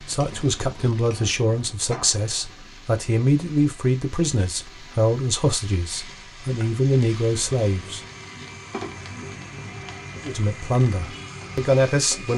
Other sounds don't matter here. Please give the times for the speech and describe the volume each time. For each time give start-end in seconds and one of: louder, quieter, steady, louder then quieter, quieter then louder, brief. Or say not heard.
0.1-8.0 steady
10.2-12.3 brief.